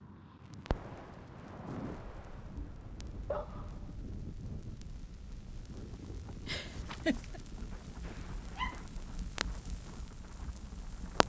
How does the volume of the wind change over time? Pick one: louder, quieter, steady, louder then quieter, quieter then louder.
quieter.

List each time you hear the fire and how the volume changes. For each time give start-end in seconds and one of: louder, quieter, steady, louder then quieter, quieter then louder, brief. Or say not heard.
0.4-11.2 quieter then louder.